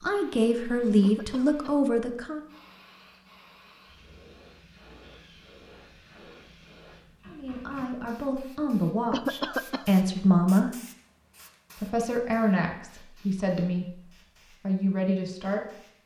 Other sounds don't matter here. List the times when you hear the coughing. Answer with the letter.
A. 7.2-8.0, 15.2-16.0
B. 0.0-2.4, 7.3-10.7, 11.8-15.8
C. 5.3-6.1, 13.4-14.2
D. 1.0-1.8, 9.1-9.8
D.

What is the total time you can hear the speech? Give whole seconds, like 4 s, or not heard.
10 s.